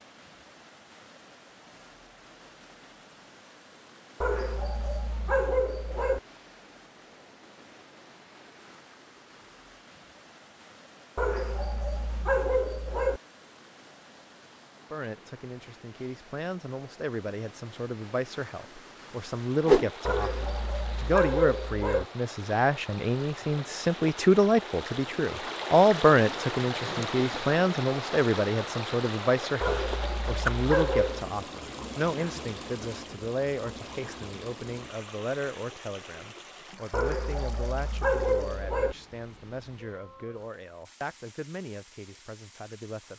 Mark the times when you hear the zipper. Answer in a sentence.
You can't hear the zipper here.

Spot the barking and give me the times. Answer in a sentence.
The barking can be heard from 4.2 to 6.2 s, from 11.2 to 13.2 s, from 20.1 to 22.1 s, from 29.6 to 31.3 s and from 36.9 to 39.0 s.